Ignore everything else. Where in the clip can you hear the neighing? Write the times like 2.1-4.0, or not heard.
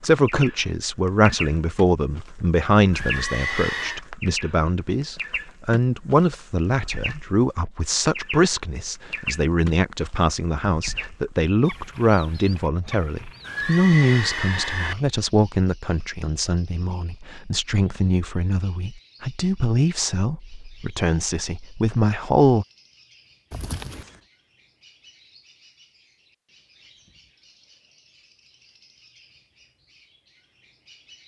2.9-4.0, 13.4-14.9, 23.5-24.2.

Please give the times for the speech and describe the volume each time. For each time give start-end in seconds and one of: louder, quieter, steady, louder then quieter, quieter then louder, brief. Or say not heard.
0.0-22.6 steady.